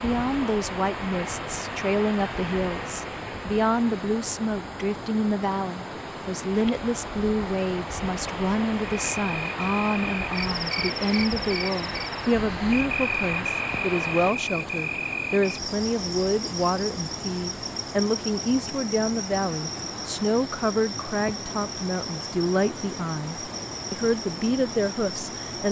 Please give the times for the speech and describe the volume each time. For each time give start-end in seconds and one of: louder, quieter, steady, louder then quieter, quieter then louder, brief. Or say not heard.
0.0-25.6 steady.